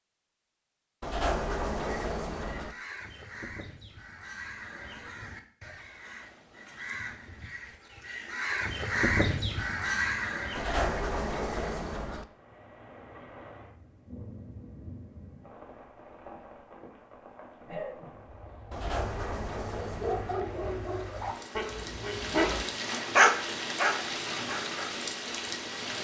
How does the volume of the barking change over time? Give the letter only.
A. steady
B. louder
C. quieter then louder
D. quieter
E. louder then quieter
E.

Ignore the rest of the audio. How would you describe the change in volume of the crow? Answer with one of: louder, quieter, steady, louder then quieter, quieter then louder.
louder.